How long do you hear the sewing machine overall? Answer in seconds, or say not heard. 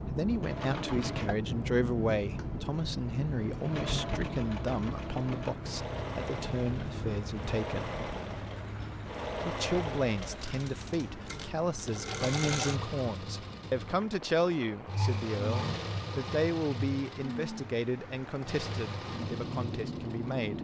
20 s.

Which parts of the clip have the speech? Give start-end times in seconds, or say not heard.
0.0-7.9, 9.4-20.5.